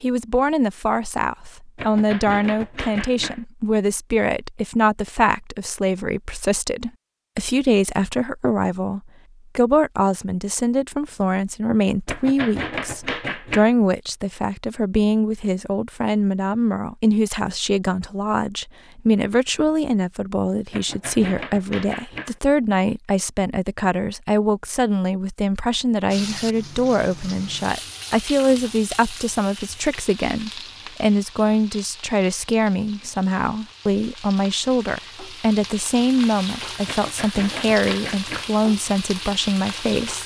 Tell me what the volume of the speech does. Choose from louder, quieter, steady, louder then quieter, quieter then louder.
steady.